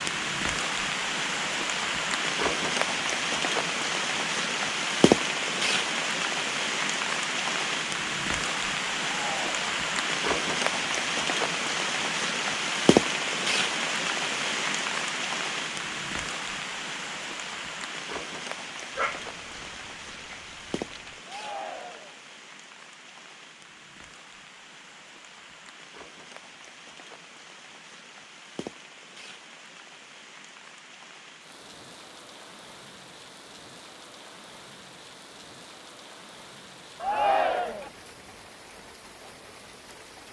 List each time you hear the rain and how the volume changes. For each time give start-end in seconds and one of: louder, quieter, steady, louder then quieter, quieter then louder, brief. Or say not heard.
0.0-40.2 quieter.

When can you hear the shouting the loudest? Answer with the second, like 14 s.
37 s.